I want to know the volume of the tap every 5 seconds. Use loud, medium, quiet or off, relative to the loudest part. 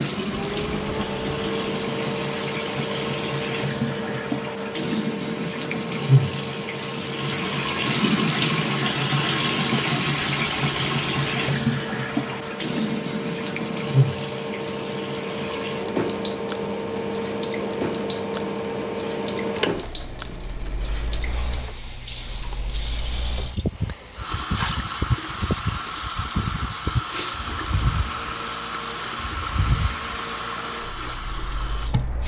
medium, loud, loud, medium, medium, medium, medium.